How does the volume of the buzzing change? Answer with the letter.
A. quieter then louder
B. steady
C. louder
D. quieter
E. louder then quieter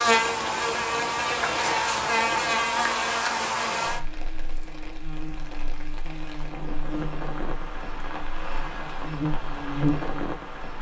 A.